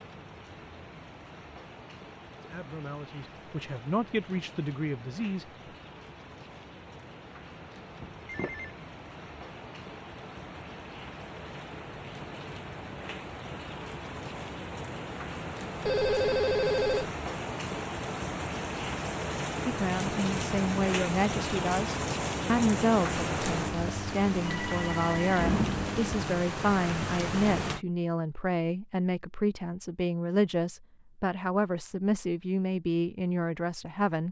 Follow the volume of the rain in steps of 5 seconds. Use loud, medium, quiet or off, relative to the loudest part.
quiet, quiet, medium, loud, loud, loud, off.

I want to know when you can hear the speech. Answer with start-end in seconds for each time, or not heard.
2.4-5.5, 19.6-34.2.